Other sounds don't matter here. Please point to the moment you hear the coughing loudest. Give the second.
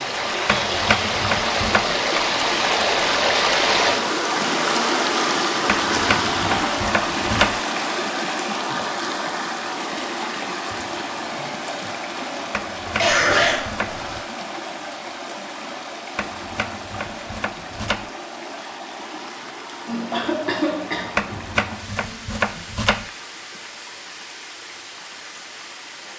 13 s.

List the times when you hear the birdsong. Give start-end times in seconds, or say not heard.
not heard.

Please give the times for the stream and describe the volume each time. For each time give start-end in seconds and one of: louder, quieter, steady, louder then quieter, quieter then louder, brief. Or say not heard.
0.0-26.1 quieter.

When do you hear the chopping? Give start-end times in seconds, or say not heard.
0.5-1.9, 5.7-7.6, 12.5-14.1, 16.1-18.1, 21.1-23.1.